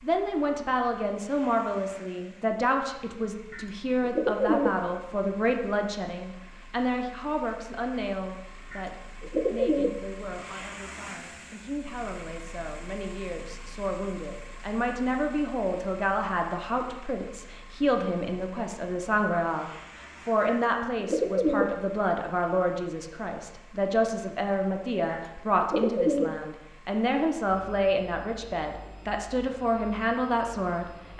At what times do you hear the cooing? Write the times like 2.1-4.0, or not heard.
3.5-4.8, 8.7-10.1, 20.4-21.8, 25.1-26.4.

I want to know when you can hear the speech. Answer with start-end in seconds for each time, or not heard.
0.0-31.1.